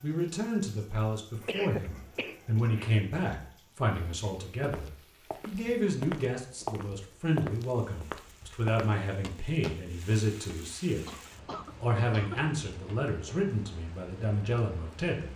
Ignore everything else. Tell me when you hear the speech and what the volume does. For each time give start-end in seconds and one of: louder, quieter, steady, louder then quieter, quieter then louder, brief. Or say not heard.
0.0-15.3 steady.